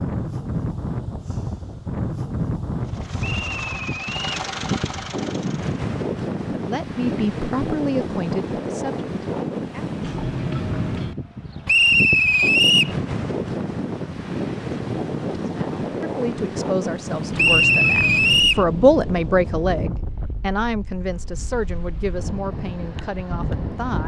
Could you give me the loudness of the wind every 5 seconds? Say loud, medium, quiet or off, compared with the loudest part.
loud, loud, loud, loud, medium.